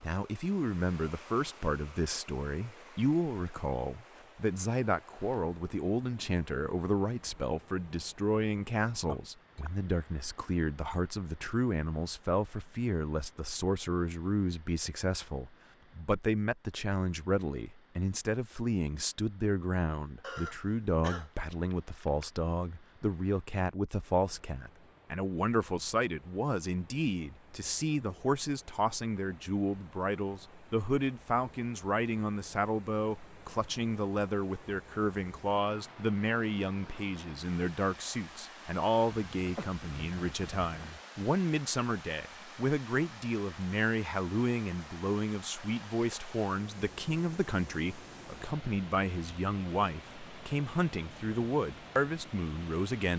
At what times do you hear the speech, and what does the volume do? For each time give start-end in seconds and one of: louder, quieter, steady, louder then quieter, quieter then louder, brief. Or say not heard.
0.0-53.1 steady.